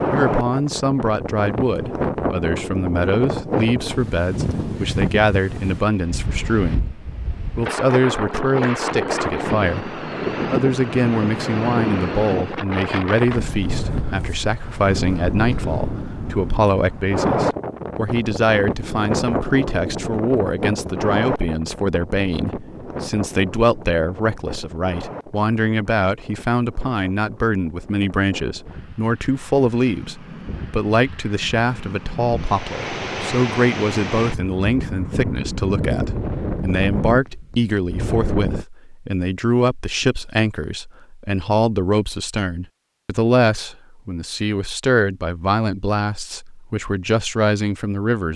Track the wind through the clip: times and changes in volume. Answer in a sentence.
You can hear the wind from 0.0 to 38.6 s, getting quieter then louder.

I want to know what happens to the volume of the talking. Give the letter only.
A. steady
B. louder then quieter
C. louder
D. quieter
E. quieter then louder
A.